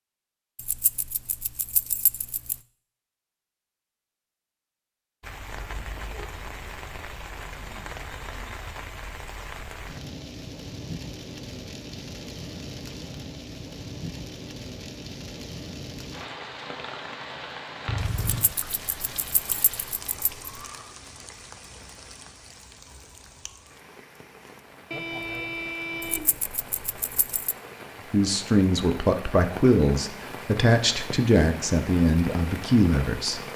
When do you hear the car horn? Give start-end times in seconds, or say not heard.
5.8-6.3, 17.9-18.6, 24.9-26.4.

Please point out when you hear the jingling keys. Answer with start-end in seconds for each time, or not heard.
0.6-2.5, 18.4-20.6, 26.0-27.6.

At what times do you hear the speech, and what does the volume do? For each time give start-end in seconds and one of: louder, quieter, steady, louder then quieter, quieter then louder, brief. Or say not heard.
28.1-33.4 steady.